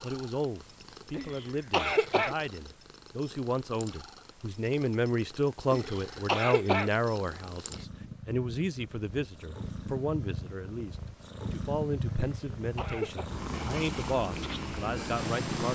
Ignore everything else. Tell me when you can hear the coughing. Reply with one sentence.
You can hear the coughing from 1.1 to 2.4 s, from 5.7 to 6.9 s and from 12.4 to 13.2 s.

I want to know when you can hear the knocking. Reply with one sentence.
The knocking can't be heard in this clip.